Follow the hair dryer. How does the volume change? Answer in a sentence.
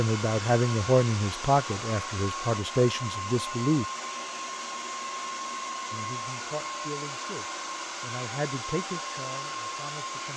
The loudness of the hair dryer stays about the same.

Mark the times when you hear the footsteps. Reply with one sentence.
The footsteps can't be heard in this clip.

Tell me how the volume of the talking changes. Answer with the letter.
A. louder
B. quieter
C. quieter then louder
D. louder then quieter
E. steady
B.